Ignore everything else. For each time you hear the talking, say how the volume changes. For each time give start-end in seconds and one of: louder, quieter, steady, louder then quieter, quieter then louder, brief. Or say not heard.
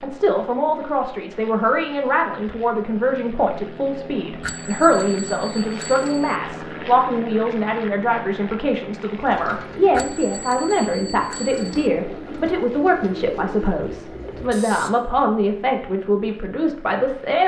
0.0-17.4 steady.